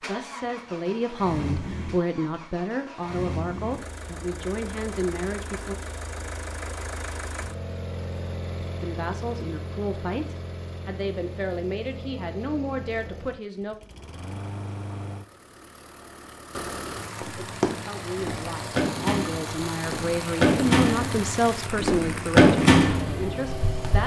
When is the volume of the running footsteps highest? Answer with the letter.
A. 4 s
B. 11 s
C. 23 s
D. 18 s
C.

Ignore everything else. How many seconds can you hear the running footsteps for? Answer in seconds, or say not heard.
7 s.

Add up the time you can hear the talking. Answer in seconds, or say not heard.
17 s.